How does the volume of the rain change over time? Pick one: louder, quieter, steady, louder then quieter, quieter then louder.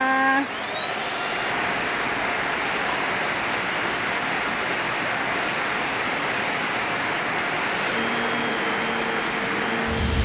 steady.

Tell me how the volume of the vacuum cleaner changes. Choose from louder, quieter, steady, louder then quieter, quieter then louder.
steady.